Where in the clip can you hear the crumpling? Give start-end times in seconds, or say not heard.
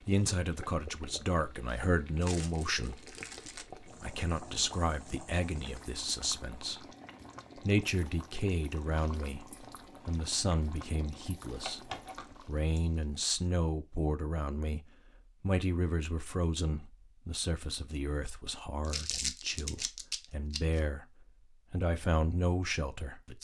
2.2-3.6, 11.6-13.2, 18.9-20.6.